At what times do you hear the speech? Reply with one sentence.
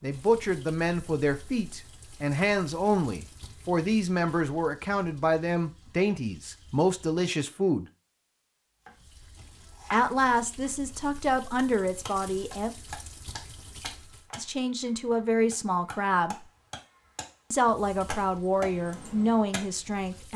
You can hear the speech from 0.0 to 7.8 s, from 9.9 to 12.8 s, from 14.3 to 16.4 s and from 17.5 to 20.3 s.